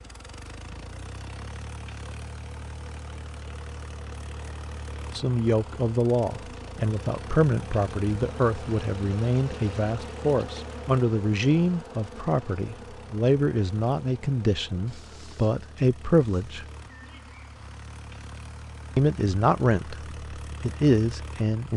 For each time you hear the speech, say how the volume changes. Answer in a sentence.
The speech can be heard from 5.2 to 16.6 s, at a steady volume; and briefly from 18.9 to 21.7 s.